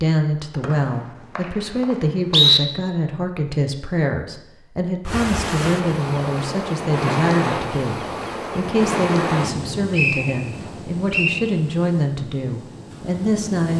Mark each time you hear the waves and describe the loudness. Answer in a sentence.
You can hear the waves from 5.0 to 13.7 s, getting quieter.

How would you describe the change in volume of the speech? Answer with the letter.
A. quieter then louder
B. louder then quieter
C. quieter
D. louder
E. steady
E.